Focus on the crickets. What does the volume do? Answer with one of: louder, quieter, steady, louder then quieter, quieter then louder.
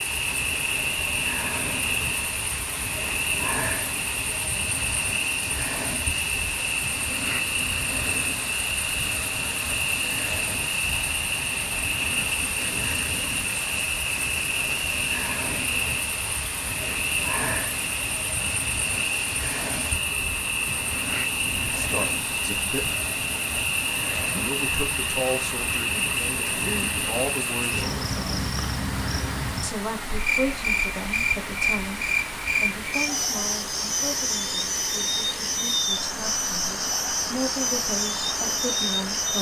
steady.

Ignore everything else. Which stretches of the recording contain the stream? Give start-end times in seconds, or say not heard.
0.0-39.3.